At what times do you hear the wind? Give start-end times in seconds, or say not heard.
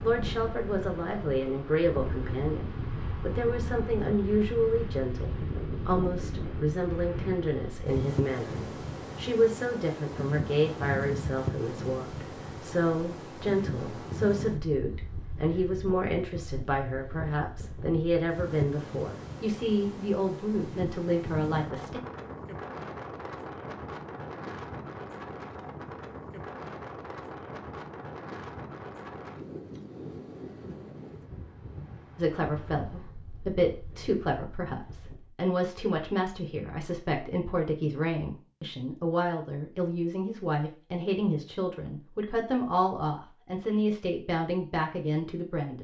0.0-35.4.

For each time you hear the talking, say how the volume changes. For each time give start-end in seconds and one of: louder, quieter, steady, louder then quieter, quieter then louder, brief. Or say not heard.
0.0-22.0 steady
32.1-45.7 steady.